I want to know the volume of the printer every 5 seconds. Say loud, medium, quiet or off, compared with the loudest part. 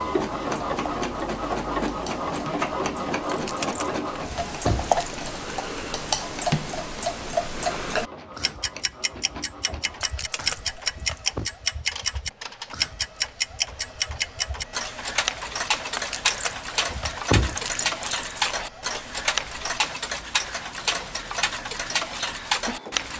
loud, quiet, quiet, quiet, quiet.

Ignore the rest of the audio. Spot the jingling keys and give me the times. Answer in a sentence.
You can hear the jingling keys from 3.2 to 5.2 s, from 10.0 to 11.5 s and from 15.9 to 18.3 s.